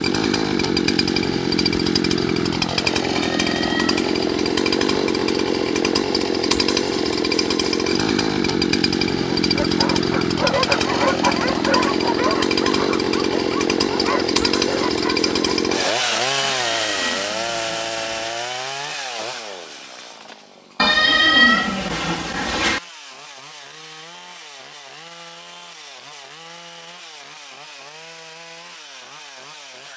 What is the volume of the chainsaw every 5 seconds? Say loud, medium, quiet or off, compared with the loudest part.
loud, loud, loud, loud, quiet, quiet.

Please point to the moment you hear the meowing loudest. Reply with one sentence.
The volume of the meowing peaks at 21 seconds.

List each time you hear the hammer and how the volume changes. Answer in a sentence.
The hammer can't be heard in this clip.